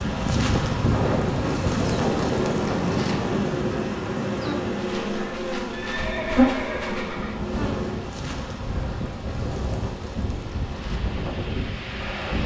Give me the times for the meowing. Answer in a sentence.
You can't hear the meowing here.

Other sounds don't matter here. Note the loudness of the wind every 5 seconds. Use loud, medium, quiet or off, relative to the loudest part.
loud, medium, medium.